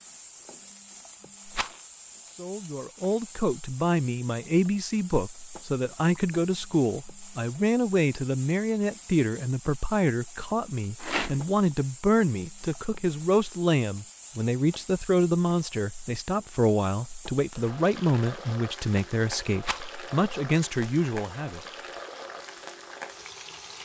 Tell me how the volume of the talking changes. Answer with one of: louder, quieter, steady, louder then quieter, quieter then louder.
steady.